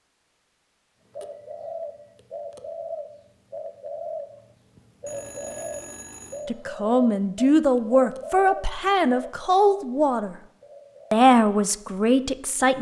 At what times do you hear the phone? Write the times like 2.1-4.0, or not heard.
5.0-6.5.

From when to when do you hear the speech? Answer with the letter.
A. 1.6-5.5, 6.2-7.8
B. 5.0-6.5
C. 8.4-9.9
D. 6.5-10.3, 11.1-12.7
D.